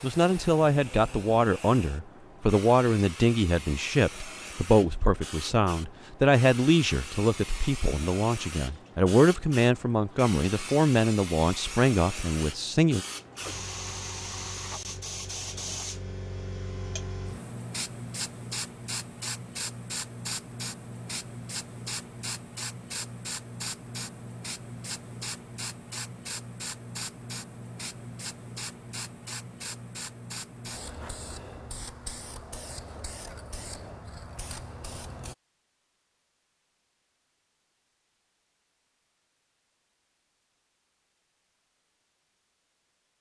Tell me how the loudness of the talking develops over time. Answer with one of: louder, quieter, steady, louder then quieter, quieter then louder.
steady.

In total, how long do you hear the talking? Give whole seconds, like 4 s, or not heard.
13 s.